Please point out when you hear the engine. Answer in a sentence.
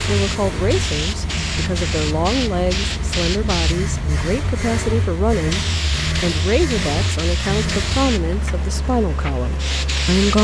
The engine can be heard from 0.0 to 10.3 s.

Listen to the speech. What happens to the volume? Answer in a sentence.
The volume of the speech stays about the same.